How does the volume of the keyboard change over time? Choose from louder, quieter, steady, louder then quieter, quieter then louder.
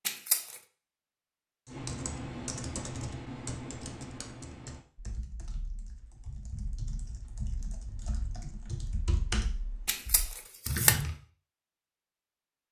quieter then louder.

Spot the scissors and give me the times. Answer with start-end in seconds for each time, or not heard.
0.1-0.6, 9.8-11.0.